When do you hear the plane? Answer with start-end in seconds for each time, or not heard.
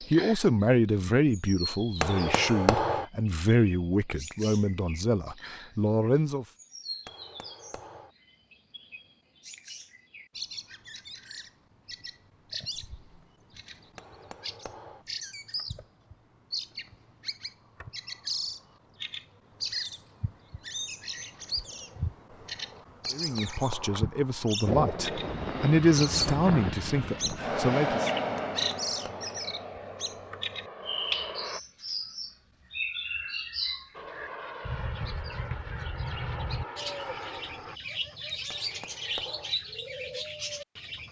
24.6-31.6, 33.9-37.8.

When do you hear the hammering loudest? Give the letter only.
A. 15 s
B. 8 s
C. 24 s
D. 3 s
D.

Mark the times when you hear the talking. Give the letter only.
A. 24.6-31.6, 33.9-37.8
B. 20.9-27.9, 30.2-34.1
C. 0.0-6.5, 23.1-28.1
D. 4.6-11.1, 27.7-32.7
C.